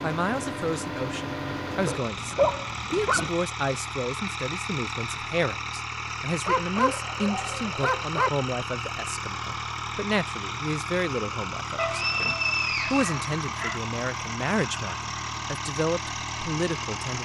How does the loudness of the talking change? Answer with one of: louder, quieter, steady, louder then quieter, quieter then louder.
steady.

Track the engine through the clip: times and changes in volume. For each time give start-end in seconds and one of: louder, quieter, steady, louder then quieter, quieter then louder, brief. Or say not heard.
0.0-17.2 steady.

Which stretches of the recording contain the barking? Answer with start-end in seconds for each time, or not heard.
1.9-3.3, 6.5-8.3, 11.8-13.8.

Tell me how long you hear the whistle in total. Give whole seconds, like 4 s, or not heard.
2 s.